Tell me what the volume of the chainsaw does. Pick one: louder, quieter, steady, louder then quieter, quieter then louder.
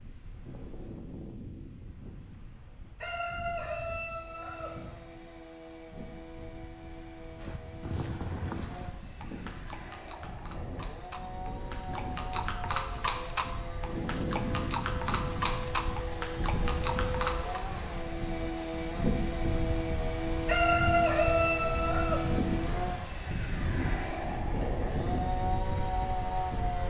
louder.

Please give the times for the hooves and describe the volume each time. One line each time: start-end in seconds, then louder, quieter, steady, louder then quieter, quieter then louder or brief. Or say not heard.
7.3-17.6 quieter then louder.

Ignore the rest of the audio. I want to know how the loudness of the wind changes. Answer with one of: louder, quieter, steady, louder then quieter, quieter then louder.
louder.